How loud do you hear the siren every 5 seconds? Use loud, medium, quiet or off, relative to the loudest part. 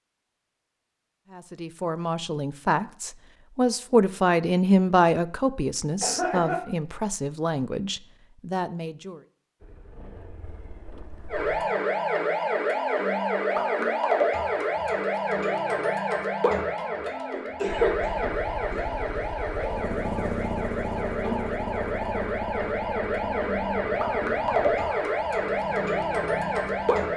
off, off, loud, loud, loud, loud.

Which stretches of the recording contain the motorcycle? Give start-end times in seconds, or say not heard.
9.6-11.7, 17.6-27.1.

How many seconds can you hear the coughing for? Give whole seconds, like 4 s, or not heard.
2 s.